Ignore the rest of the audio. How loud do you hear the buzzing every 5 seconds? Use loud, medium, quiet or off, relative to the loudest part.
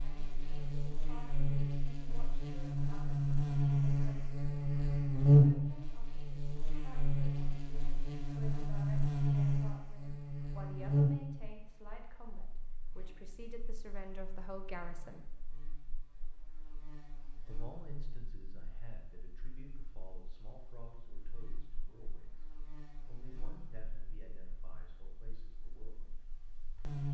medium, loud, medium, quiet, quiet, quiet.